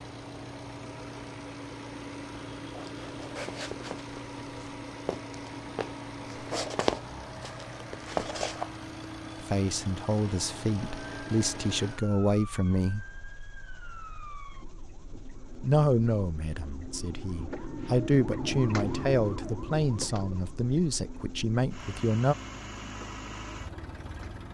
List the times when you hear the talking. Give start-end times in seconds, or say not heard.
9.4-13.1, 15.6-22.4.